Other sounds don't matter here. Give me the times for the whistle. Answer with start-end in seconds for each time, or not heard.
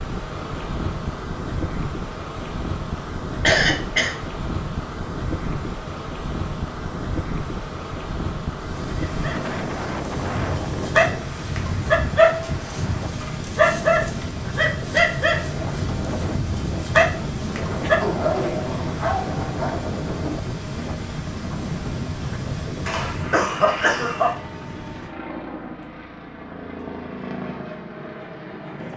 not heard.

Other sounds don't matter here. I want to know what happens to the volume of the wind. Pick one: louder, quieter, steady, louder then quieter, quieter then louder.
steady.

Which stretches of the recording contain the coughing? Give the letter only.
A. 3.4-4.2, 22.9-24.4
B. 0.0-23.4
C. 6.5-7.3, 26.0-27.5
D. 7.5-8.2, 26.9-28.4
A.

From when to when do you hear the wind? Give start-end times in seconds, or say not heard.
0.0-23.4.